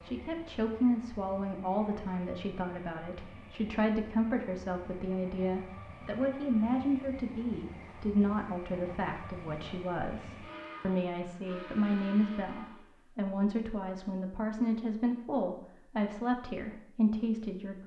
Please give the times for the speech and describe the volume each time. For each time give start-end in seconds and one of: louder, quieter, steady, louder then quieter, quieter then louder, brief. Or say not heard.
0.0-17.8 steady.